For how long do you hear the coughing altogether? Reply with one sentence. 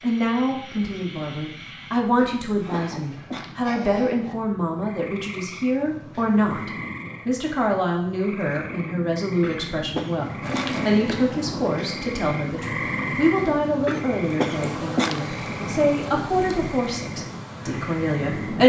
The coughing can be heard for 4 seconds in total.